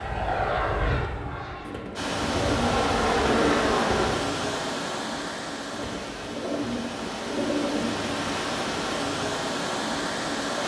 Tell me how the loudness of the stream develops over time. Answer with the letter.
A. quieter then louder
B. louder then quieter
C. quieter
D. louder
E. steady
A.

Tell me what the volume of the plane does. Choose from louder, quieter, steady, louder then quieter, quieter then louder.
quieter then louder.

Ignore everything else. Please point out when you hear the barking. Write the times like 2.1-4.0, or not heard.
not heard.